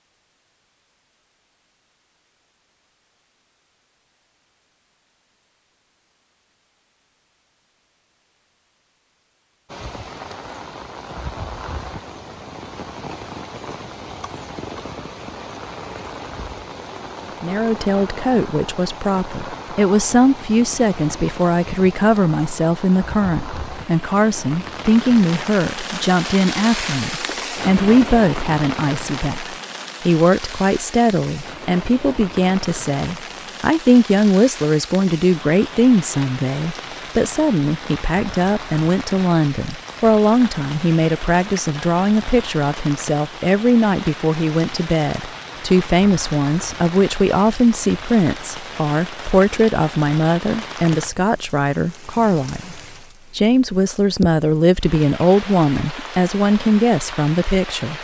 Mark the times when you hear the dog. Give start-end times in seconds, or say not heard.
not heard.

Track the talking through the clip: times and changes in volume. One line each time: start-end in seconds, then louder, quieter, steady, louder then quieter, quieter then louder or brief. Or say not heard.
17.4-57.9 steady.